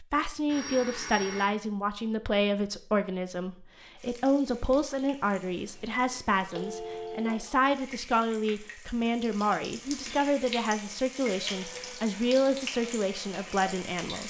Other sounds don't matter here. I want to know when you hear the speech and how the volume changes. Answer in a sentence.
The speech can be heard from 0.0 to 14.2 s, at a steady volume.